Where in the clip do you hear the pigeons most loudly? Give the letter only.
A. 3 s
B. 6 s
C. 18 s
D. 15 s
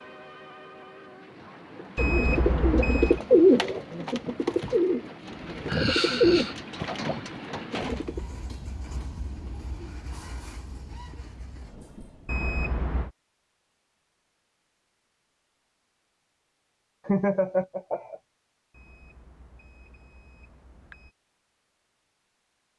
A.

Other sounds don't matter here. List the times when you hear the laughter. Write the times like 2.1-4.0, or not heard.
5.7-6.5, 17.1-18.1.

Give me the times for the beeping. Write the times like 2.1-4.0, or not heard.
1.9-3.2, 12.2-13.1, 18.7-21.1.